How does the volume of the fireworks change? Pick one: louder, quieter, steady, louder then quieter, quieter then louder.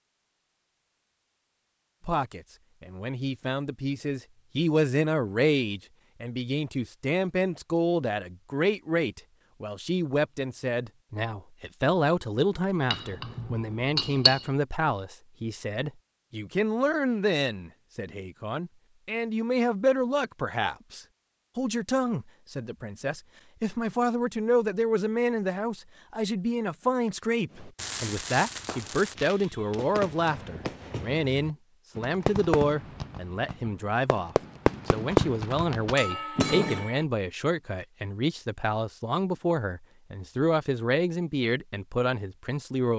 louder.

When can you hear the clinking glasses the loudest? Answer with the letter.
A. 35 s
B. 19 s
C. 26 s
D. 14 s
D.